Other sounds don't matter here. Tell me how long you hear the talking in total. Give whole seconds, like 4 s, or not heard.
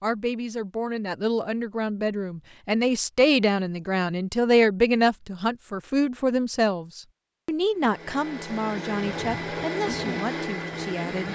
11 s.